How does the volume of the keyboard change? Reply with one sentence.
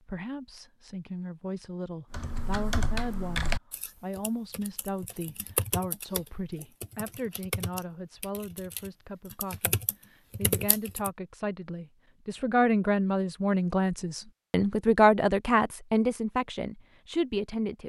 The volume of the keyboard goes down, then up.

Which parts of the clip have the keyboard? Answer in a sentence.
You can hear the keyboard from 2.1 to 11.1 s.